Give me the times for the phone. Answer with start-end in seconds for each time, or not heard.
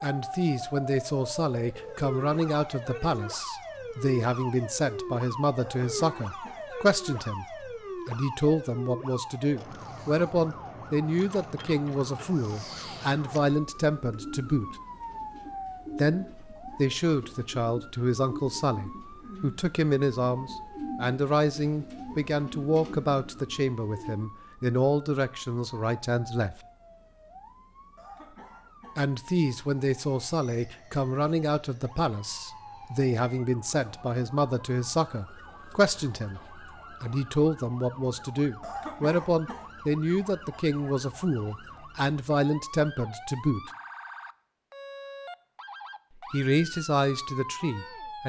not heard.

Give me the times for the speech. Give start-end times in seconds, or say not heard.
0.0-7.5, 8.1-14.8, 15.9-26.6, 28.9-43.7, 46.3-48.2.